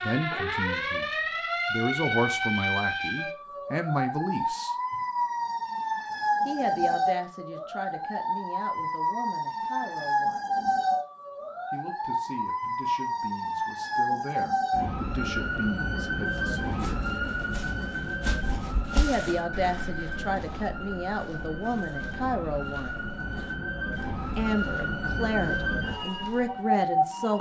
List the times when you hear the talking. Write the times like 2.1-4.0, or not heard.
0.0-4.8, 6.5-10.4, 11.7-17.0, 18.9-22.9, 24.4-27.3.